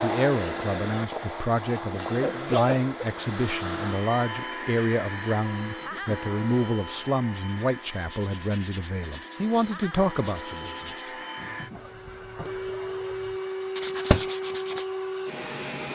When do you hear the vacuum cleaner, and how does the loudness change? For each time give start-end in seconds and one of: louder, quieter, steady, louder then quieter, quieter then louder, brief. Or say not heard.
0.0-15.8 quieter then louder.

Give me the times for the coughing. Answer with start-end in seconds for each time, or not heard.
2.1-3.0, 5.8-6.2, 11.7-13.2.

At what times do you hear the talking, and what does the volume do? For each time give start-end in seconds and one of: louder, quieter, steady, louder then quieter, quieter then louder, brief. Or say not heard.
0.0-11.1 steady.